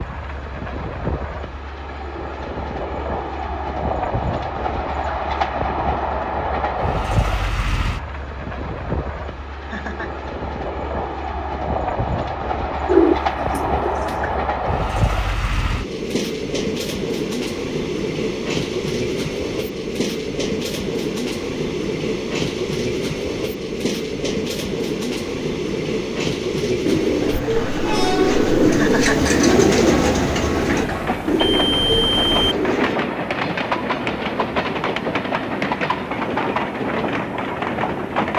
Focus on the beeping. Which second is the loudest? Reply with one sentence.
The loudest moment of the beeping is at 32 seconds.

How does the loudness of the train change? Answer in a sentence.
The volume of the train stays about the same.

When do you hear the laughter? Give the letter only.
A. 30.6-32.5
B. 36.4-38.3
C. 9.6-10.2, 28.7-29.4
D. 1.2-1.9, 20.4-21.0
C.